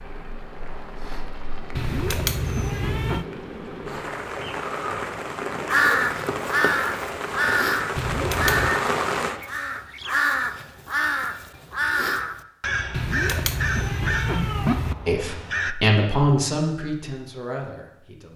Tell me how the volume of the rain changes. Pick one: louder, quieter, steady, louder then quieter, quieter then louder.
louder.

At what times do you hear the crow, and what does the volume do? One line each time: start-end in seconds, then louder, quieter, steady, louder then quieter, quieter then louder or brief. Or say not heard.
5.7-15.8 quieter.